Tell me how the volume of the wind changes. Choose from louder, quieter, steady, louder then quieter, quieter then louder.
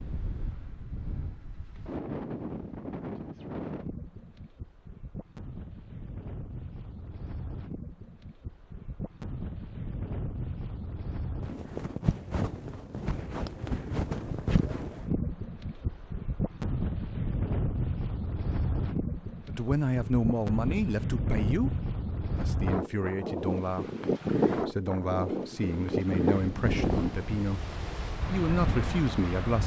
louder.